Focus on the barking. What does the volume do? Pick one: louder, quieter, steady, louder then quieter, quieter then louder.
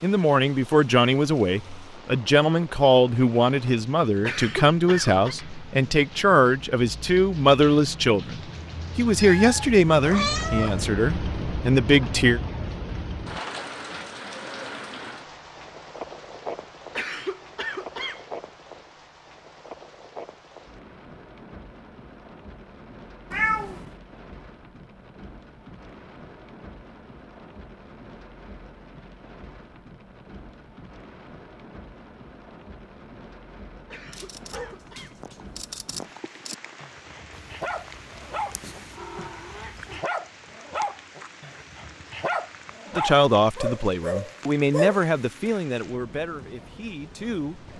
louder.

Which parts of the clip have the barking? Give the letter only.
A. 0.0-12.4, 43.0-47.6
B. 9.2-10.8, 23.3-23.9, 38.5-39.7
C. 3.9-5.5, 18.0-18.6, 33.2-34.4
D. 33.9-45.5
D.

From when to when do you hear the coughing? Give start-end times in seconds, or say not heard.
4.2-5.3, 16.9-18.2, 33.9-35.2.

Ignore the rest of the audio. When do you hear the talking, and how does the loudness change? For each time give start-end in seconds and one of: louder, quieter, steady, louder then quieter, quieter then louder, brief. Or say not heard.
0.0-12.4 steady
43.0-47.6 quieter.